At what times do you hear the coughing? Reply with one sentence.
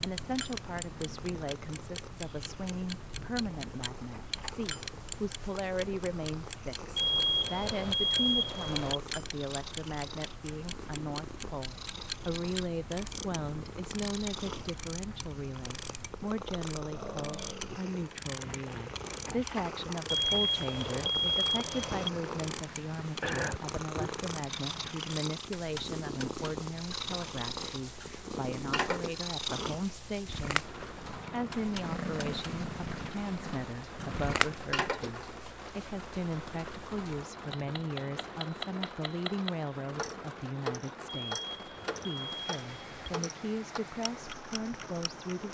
The coughing can be heard from 23.2 to 24.1 s.